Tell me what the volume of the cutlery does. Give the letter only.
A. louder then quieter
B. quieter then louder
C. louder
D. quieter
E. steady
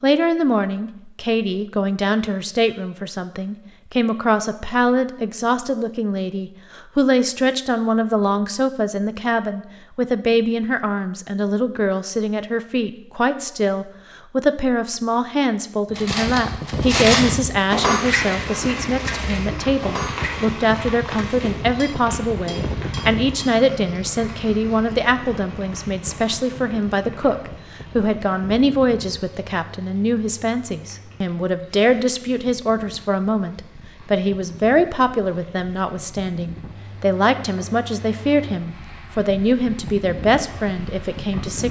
D.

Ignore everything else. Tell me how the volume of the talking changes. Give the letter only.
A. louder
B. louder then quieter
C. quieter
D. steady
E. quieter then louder
D.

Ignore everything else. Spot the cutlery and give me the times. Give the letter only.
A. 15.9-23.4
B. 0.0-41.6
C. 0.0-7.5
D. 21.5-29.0
A.